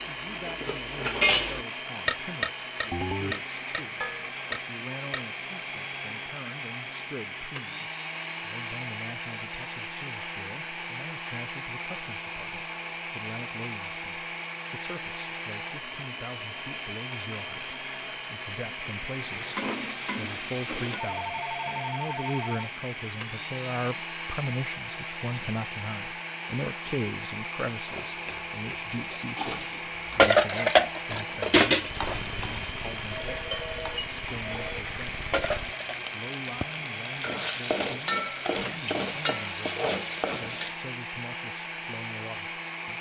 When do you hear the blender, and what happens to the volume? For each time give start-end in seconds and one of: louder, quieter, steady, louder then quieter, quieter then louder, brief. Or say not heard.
0.0-42.9 steady.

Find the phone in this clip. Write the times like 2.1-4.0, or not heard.
2.9-3.4, 21.1-22.7, 33.1-34.9.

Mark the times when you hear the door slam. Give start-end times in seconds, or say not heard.
not heard.